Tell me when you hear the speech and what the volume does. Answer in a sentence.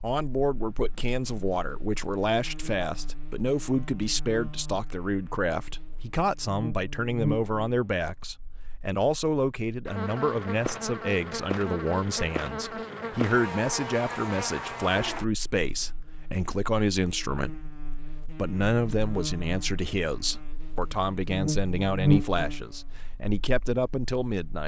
The speech can be heard from 0.0 to 24.6 s, at a steady volume.